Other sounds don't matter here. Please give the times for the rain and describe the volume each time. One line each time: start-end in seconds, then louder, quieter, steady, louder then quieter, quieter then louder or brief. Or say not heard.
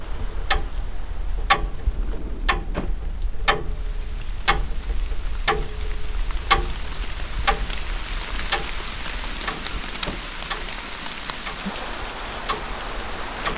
0.0-13.5 louder.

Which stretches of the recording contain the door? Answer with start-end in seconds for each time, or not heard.
1.8-3.0, 9.2-10.3.